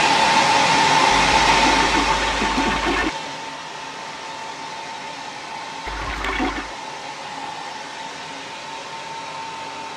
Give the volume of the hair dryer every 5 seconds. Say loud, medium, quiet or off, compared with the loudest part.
loud, quiet.